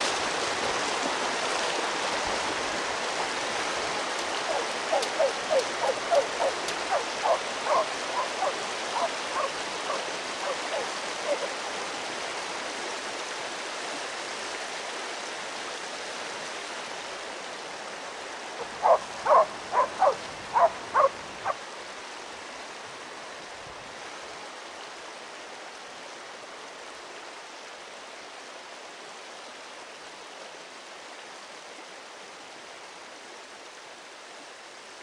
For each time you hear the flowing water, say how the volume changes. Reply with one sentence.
You can hear the flowing water from 0.0 to 34.9 s, getting quieter.